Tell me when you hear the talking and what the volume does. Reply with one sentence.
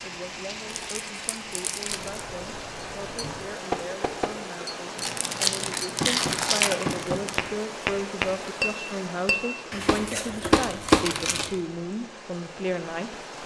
The talking can be heard from 0.0 to 13.2 s, getting louder.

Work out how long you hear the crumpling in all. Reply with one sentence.
The crumpling can be heard for 6 seconds in total.